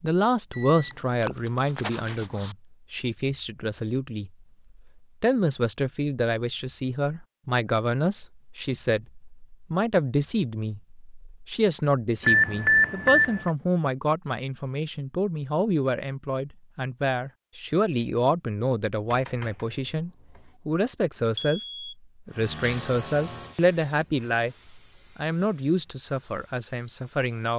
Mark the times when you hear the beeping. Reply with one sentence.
The beeping can be heard from 0.5 to 2.5 s, from 12.2 to 13.5 s and from 21.5 to 21.9 s.